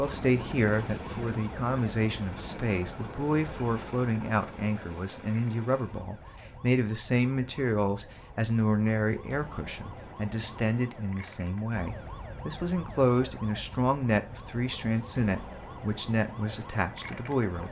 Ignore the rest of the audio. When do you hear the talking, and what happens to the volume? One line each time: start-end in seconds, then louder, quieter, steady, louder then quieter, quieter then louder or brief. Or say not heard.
0.0-17.6 steady.